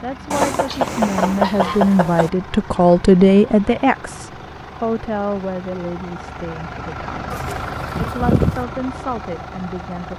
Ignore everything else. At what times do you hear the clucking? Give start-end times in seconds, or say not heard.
0.3-2.3, 7.3-8.7.